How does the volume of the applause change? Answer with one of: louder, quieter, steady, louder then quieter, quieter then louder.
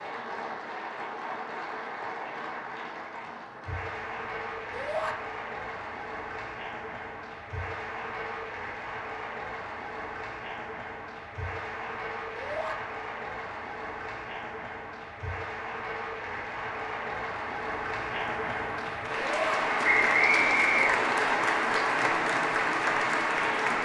louder.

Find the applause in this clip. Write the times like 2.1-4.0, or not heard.
0.0-23.8.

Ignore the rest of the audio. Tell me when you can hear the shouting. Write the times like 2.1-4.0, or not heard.
4.7-5.2, 12.3-12.8, 19.1-19.6.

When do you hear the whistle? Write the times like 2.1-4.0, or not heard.
19.8-21.4.